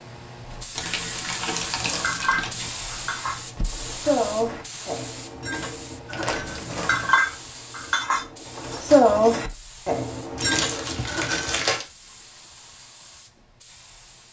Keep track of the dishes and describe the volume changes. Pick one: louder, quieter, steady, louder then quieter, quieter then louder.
louder then quieter.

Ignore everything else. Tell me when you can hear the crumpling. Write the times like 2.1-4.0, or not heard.
0.8-2.7, 6.1-7.2, 10.3-11.8.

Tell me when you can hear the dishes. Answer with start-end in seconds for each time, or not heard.
1.6-11.7.